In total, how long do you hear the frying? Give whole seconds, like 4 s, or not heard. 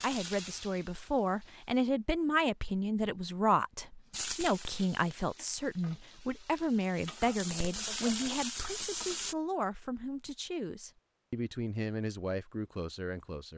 7 s.